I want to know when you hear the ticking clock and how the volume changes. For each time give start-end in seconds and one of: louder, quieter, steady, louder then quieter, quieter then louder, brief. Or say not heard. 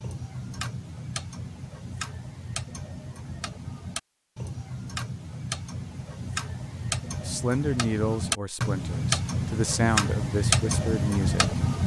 0.0-11.8 louder.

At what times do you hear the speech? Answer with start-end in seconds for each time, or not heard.
7.2-11.6.